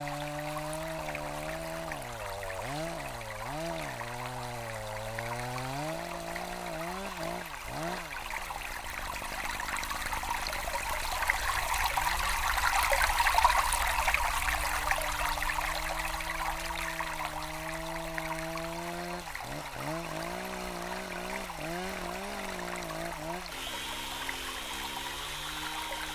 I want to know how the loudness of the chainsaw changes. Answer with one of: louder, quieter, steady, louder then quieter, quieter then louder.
quieter then louder.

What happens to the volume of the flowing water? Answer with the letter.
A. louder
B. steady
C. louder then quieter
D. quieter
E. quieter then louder
C.